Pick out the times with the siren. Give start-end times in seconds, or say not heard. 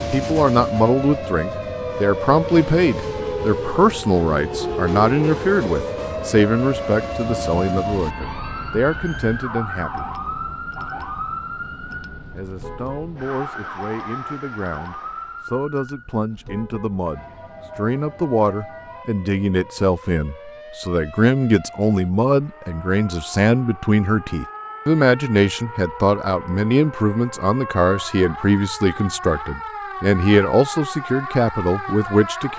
0.0-32.5.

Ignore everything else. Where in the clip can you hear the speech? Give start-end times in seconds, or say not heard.
0.0-10.1, 12.3-32.5.